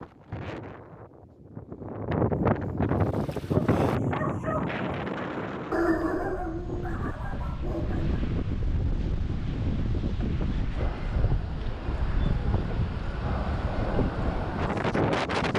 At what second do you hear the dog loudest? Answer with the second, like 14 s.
6 s.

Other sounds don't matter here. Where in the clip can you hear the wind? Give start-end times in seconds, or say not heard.
0.0-15.5.